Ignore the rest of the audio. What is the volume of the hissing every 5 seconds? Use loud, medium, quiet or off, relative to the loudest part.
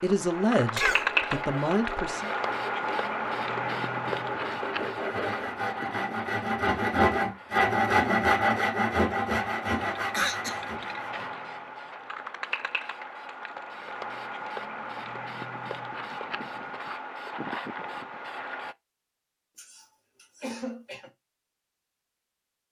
loud, medium, medium, medium, off.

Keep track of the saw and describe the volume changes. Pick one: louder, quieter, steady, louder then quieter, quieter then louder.
louder then quieter.